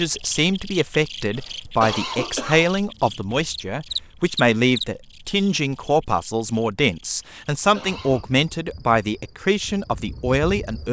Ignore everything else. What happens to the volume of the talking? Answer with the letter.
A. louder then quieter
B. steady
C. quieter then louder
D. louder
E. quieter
B.